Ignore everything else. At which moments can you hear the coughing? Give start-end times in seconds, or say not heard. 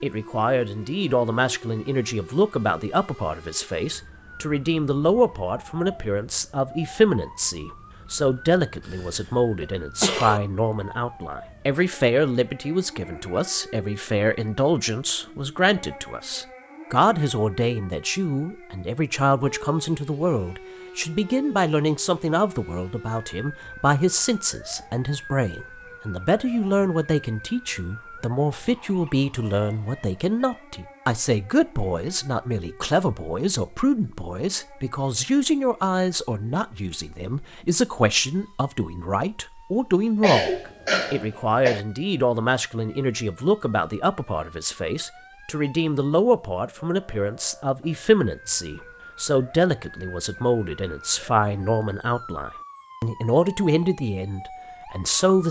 8.8-10.4, 40.2-41.9.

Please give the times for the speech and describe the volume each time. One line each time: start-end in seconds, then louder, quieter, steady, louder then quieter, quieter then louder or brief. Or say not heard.
0.0-55.4 steady.